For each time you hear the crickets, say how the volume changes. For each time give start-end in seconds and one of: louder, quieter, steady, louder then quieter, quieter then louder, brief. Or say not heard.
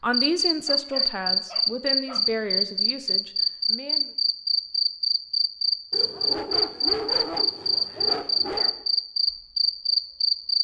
0.1-10.6 steady.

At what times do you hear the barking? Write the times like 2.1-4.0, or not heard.
0.7-2.2, 5.9-8.8.